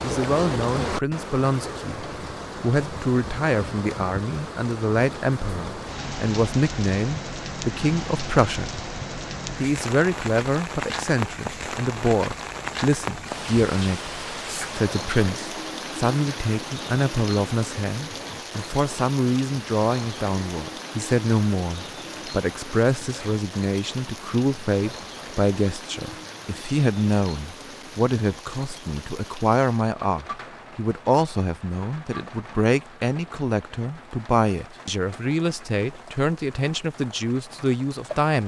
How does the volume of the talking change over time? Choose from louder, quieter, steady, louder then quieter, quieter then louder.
steady.